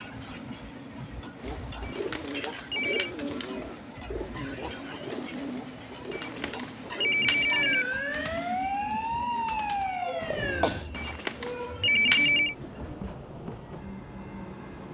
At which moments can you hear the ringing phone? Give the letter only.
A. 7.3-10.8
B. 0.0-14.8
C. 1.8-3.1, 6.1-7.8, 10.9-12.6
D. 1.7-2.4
C.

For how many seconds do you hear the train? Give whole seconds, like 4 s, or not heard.
15 s.